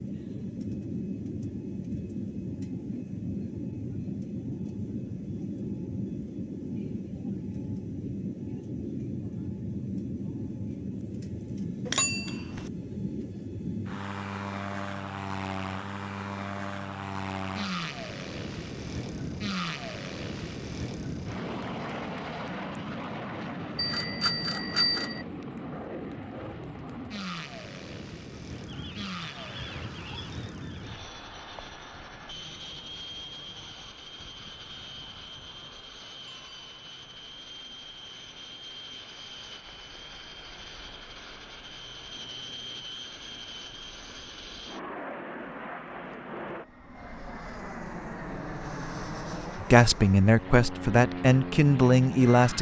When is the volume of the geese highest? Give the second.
30 s.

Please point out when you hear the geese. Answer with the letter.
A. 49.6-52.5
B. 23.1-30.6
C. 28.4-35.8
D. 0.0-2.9
C.